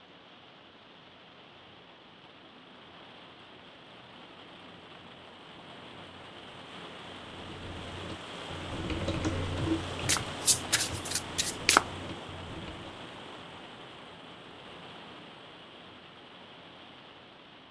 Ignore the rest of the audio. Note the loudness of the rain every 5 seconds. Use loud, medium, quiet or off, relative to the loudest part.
medium, loud, loud, medium.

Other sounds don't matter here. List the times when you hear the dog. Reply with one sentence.
You can't hear the dog here.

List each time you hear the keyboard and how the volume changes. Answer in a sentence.
The keyboard can be heard from 7.3 to 13.1 s, getting louder then quieter.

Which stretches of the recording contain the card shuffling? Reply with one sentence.
The card shuffling can be heard from 10.1 to 11.8 s.